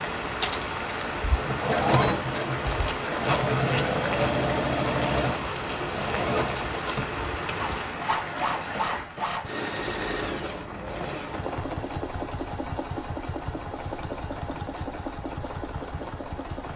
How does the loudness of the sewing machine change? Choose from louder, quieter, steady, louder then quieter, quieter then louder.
quieter.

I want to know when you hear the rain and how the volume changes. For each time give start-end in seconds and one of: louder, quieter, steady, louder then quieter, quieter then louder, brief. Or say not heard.
0.0-16.7 quieter.